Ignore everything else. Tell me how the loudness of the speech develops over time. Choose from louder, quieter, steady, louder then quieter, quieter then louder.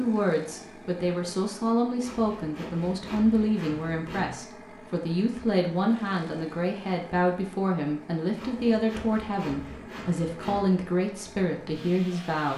steady.